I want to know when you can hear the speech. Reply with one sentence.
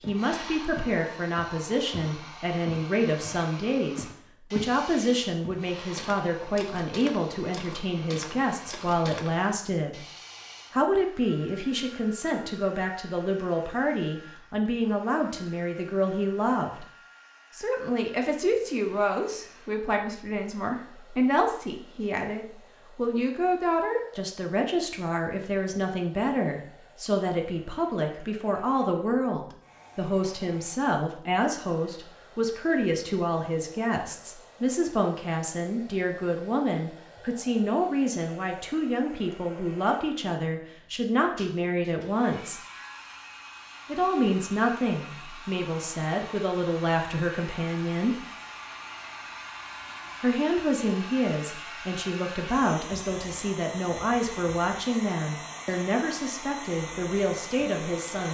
You can hear the speech from 0.1 to 10.1 s, from 10.7 to 16.9 s, from 17.6 to 42.6 s, from 43.9 to 48.1 s and from 50.2 to 58.2 s.